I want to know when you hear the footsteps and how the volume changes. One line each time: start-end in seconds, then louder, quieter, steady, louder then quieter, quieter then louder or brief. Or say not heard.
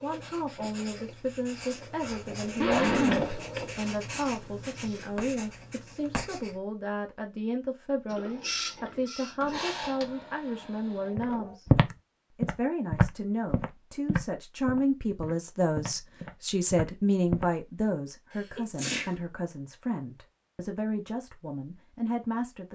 11.2-17.4 quieter.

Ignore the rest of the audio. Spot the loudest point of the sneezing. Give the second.
3 s.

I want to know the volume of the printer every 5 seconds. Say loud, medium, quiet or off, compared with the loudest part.
loud, loud, medium, off, off.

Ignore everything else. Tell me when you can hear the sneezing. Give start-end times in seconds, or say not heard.
2.0-3.4, 9.5-10.0, 18.6-19.2.